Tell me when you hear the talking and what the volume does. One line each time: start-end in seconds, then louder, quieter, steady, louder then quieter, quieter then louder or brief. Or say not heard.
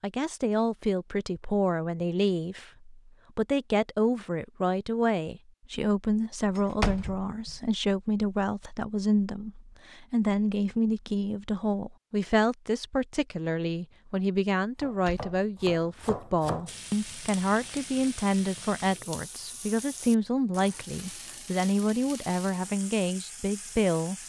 0.0-24.1 steady.